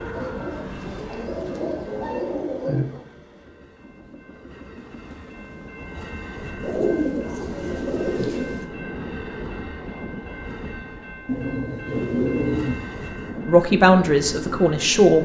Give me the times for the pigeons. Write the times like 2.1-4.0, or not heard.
0.1-3.0, 6.6-8.7, 11.2-12.8.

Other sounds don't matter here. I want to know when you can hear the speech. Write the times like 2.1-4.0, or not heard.
13.4-15.2.